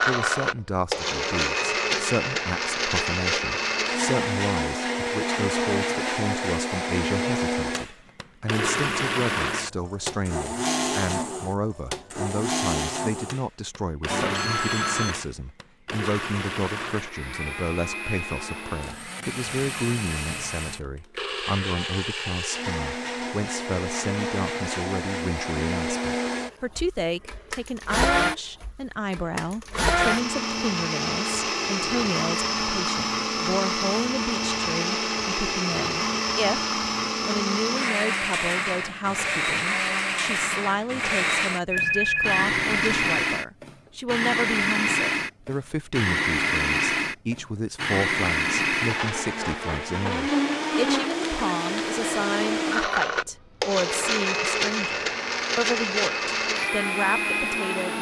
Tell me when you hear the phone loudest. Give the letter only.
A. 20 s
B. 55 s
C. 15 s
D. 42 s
D.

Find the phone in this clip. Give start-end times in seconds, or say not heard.
14.1-15.2, 41.7-43.1.